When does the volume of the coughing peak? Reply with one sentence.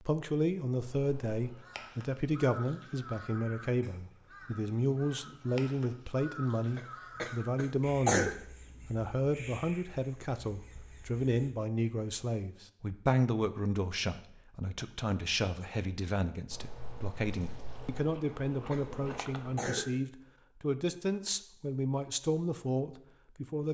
The volume of the coughing peaks at 8 seconds.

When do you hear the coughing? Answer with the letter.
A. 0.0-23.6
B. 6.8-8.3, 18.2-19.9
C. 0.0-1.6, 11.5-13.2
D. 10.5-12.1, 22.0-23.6
B.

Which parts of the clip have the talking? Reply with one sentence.
You can hear the talking from 0.0 to 23.6 s.